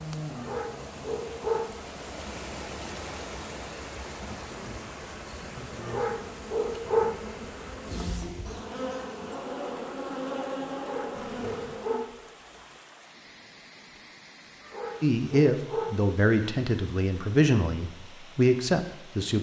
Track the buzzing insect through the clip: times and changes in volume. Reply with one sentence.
The buzzing insect can be heard from 0.0 to 12.1 s, getting louder.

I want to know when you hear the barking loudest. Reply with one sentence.
The loudest moment of the barking is at 7 seconds.